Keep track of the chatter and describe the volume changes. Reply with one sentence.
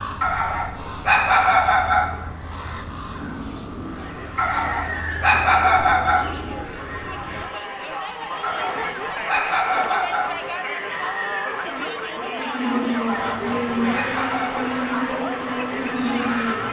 The volume of the chatter goes up.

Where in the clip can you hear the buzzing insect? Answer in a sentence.
You can hear the buzzing insect from 12.2 to 16.6 s.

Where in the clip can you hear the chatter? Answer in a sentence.
The chatter can be heard from 3.8 to 16.6 s.